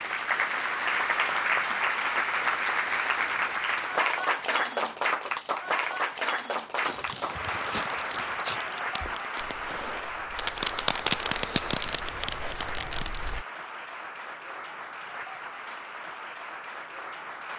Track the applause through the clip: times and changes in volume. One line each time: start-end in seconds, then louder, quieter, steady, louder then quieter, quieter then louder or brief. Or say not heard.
0.0-17.5 quieter.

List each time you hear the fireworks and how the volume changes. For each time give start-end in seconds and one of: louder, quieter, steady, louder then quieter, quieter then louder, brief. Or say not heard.
6.8-13.3 louder then quieter.